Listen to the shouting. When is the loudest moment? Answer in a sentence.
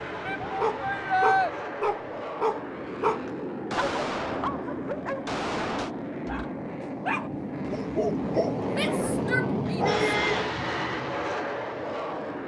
The volume of the shouting peaks at 1 second.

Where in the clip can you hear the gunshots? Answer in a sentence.
You can hear the gunshots from 3.2 to 6.0 s.